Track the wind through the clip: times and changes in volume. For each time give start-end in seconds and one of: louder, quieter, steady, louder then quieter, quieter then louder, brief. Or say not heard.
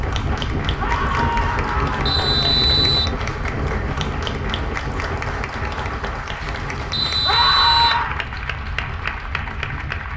0.0-10.1 quieter.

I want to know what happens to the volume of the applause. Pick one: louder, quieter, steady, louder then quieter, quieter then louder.
steady.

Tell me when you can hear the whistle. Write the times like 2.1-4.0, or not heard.
2.0-3.1, 6.9-8.1.